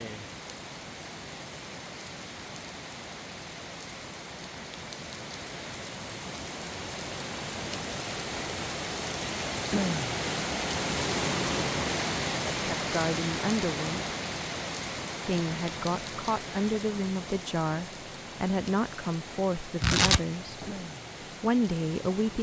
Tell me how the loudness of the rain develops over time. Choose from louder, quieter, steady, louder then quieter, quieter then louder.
louder then quieter.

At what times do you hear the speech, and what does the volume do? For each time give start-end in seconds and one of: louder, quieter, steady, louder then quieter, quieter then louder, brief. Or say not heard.
12.5-14.2 brief
15.2-20.6 steady
21.4-22.3 brief.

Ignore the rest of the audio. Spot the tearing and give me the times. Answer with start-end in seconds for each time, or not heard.
19.8-20.7.